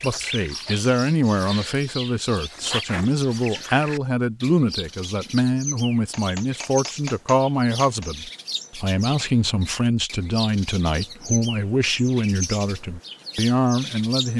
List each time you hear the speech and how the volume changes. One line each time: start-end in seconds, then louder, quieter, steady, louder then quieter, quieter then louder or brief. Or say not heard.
0.0-14.3 steady.